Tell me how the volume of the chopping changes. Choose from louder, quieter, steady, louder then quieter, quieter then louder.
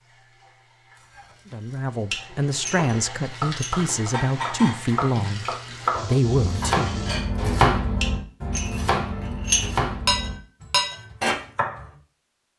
louder then quieter.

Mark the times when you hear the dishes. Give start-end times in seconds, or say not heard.
1.1-11.3.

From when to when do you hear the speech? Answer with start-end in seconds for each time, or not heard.
1.5-7.0.